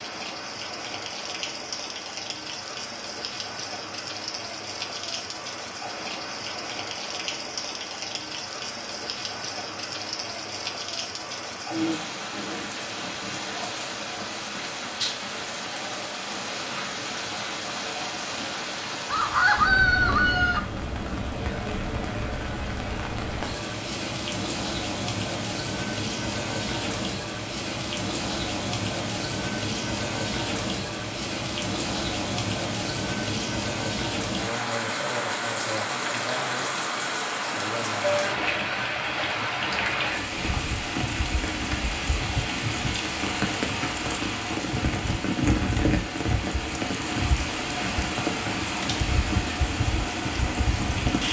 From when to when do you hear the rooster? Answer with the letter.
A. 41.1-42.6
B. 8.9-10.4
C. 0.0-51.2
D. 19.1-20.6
D.